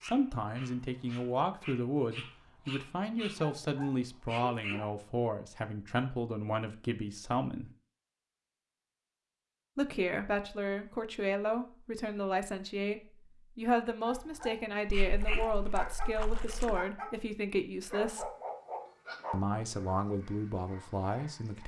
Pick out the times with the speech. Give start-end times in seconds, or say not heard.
0.0-7.7, 9.8-18.3, 19.3-21.6.